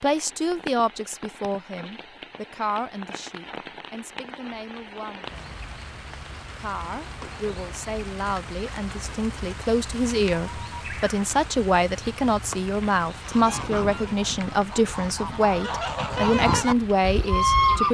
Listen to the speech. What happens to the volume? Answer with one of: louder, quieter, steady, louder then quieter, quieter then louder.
quieter then louder.